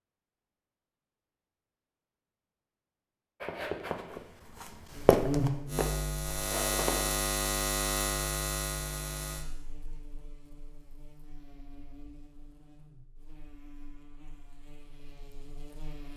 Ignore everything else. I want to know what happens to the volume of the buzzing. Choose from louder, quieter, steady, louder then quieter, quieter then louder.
quieter.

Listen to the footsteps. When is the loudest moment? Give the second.
5 s.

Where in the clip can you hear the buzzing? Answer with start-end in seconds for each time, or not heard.
4.9-16.1.